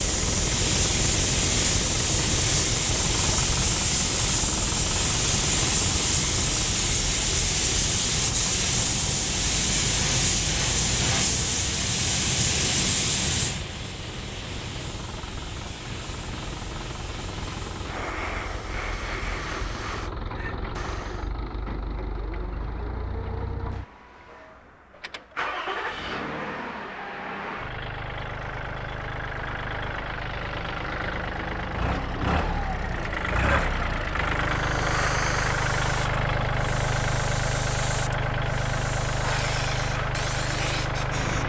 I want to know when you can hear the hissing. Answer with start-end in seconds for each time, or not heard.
0.0-21.3, 34.5-41.4.